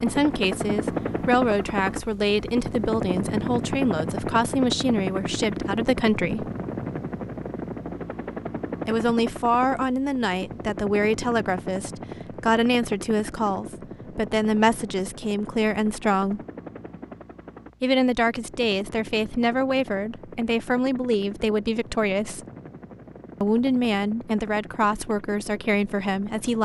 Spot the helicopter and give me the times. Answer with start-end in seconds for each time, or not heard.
0.0-26.6.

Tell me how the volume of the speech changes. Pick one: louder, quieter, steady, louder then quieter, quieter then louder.
steady.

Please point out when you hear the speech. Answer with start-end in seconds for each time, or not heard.
0.0-6.5, 8.8-16.4, 17.8-22.4, 23.4-26.6.